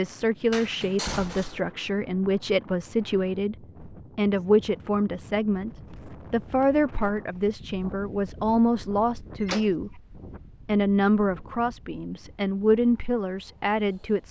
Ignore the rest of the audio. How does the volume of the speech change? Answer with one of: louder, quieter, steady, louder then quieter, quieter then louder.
steady.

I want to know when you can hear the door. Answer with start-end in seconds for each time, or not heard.
0.5-1.6, 9.3-9.8.